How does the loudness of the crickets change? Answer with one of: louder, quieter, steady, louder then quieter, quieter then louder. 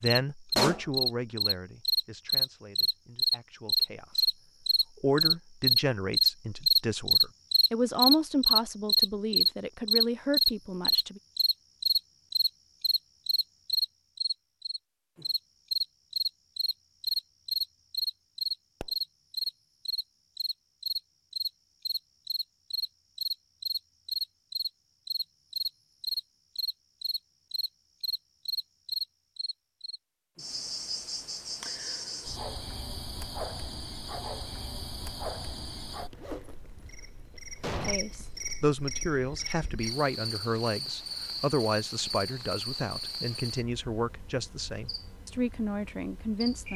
quieter.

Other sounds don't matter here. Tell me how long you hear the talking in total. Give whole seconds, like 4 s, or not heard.
20 s.